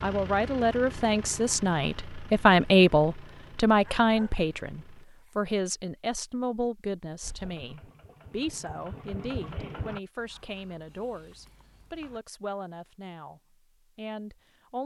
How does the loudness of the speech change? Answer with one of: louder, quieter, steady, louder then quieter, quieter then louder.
quieter.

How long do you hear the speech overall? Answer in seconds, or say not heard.
15 s.